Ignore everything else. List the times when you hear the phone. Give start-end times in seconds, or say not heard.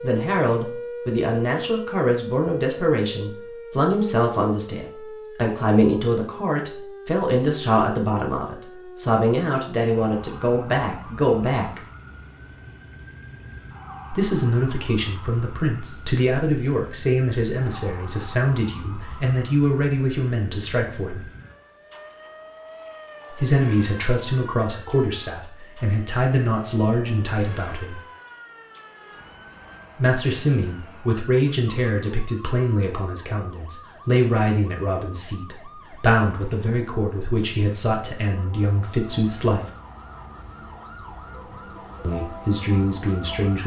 not heard.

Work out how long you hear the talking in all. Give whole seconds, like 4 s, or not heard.
35 s.